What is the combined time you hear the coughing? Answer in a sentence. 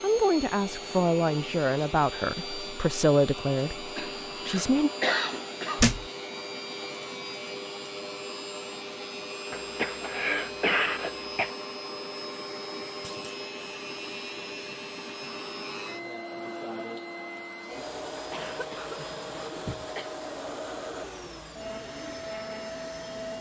You can hear the coughing for 6 seconds altogether.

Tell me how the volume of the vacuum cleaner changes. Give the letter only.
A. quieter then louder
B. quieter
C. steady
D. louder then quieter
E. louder
C.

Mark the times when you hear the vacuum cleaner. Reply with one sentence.
The vacuum cleaner can be heard from 0.0 to 23.3 s.